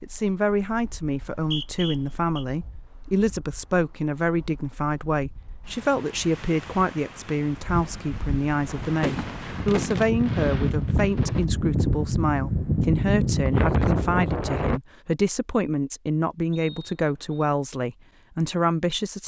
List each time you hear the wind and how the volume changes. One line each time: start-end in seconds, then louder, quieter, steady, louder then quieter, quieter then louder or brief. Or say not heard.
0.0-14.8 louder.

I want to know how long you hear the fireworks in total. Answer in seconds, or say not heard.
3 s.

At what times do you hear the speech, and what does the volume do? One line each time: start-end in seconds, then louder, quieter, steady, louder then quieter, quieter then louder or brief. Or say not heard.
0.0-19.2 steady.